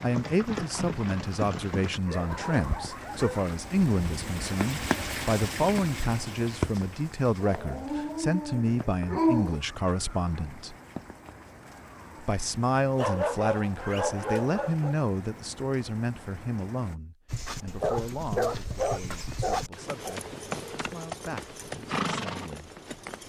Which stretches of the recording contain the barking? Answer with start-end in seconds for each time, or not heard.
2.0-3.6, 7.4-9.6, 12.9-14.9, 17.6-20.1.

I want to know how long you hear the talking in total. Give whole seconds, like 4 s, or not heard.
21 s.